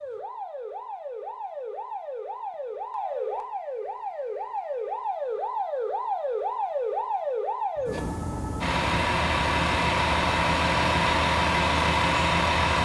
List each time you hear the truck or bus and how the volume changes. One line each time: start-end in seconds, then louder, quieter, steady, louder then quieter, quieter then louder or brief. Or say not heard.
8.6-12.7 steady.